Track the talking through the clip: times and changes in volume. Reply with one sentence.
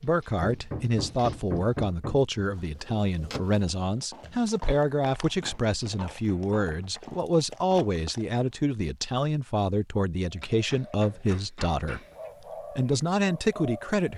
The talking can be heard from 0.0 to 12.0 s, at a steady volume; and briefly from 12.8 to 14.1 s.